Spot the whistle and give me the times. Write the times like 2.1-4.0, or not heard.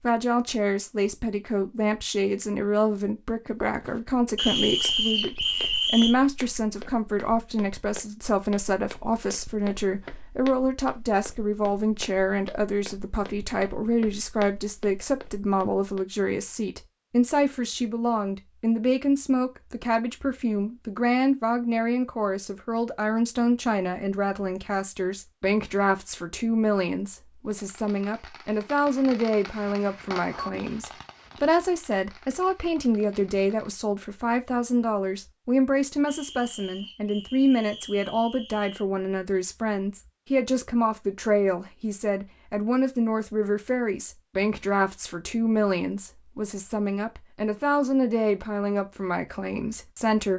4.3-6.2, 36.0-38.9.